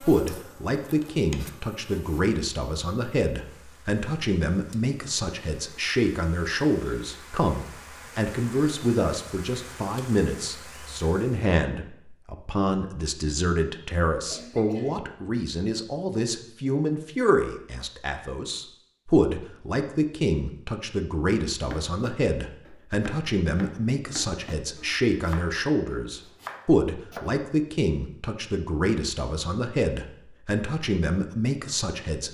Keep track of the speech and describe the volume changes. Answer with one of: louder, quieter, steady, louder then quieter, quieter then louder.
steady.